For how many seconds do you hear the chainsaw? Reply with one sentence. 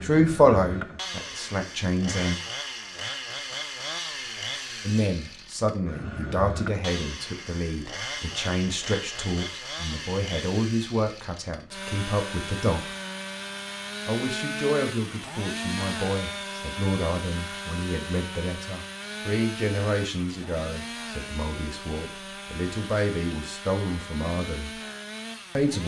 You can hear the chainsaw for 26 seconds altogether.